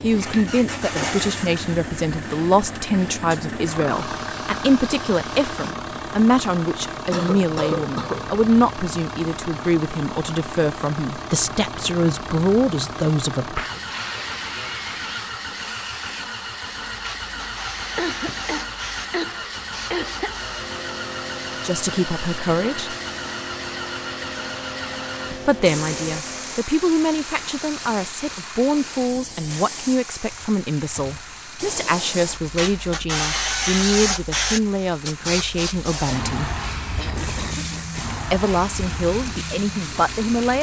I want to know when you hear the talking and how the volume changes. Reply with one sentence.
The talking can be heard from 0.0 to 13.8 s, at a steady volume; briefly from 21.6 to 22.9 s; from 25.4 to 36.5 s, at a steady volume; and briefly from 38.3 to 40.5 s.